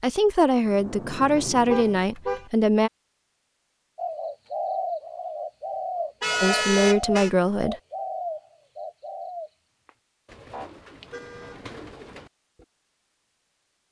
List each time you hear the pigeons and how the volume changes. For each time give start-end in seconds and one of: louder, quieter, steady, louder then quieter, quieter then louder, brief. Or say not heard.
4.0-12.7 quieter.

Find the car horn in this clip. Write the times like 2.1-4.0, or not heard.
1.6-2.5, 6.2-7.3, 10.5-11.6.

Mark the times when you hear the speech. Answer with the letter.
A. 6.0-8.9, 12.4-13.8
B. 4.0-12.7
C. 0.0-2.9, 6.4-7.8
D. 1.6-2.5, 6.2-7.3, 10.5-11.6
C.